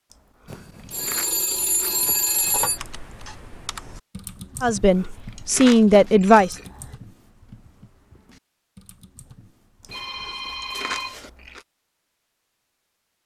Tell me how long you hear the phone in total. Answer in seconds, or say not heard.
5 s.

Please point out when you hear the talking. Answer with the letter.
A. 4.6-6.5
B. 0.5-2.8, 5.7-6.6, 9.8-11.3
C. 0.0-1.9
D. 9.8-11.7
A.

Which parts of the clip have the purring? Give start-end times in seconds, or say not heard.
not heard.